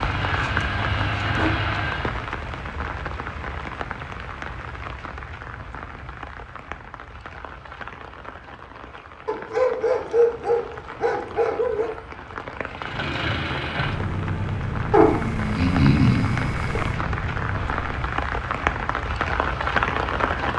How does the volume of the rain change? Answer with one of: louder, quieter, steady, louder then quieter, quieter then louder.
quieter then louder.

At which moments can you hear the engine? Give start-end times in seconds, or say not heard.
0.0-2.2, 12.7-17.9.